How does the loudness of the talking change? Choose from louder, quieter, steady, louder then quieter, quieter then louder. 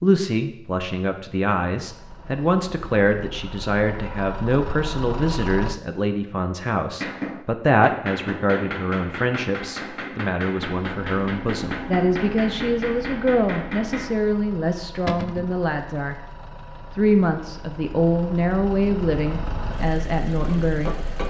steady.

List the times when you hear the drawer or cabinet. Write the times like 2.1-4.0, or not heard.
15.1-15.6.